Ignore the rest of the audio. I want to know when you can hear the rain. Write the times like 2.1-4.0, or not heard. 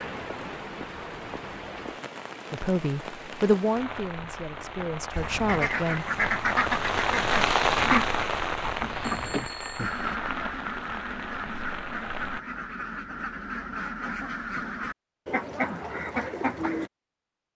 0.0-12.4.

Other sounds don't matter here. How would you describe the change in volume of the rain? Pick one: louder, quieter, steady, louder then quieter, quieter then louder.
louder then quieter.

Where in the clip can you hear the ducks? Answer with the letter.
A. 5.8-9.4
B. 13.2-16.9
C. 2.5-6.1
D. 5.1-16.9
D.